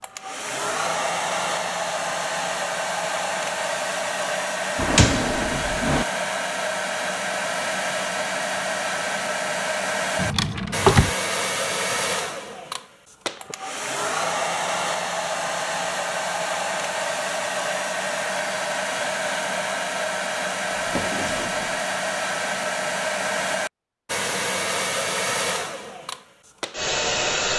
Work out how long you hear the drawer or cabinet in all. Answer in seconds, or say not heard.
3 s.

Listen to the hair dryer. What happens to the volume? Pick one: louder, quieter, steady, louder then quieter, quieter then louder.
steady.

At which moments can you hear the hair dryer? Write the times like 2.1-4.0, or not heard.
0.0-27.5.